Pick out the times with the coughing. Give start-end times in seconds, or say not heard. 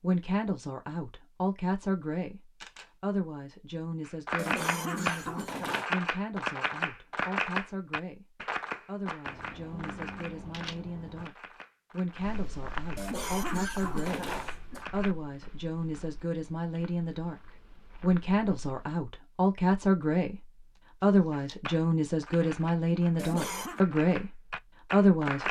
4.3-5.9, 12.9-14.8, 23.1-23.8.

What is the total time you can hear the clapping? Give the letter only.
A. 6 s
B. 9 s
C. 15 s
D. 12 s
C.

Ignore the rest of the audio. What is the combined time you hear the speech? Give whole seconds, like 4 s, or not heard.
25 s.